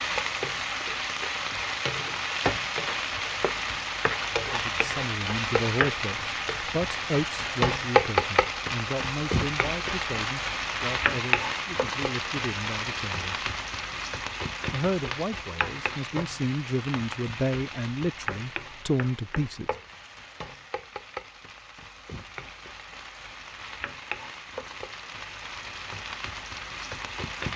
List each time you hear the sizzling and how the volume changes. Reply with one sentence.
You can hear the sizzling from 0.0 to 27.5 s, getting quieter.